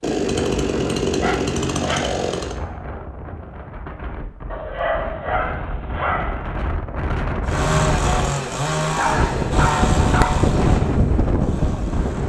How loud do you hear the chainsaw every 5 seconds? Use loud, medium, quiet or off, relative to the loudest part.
loud, loud, medium.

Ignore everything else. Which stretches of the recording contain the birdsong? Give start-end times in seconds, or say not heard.
not heard.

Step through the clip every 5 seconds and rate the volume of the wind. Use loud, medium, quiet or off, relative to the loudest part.
quiet, medium, loud.